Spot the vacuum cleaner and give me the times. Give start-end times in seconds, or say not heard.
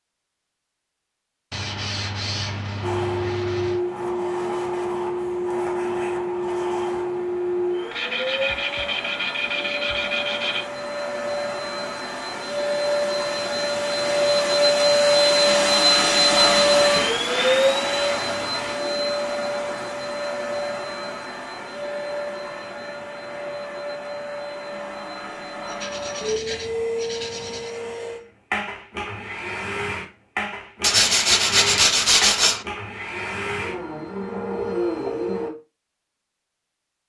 2.8-35.5.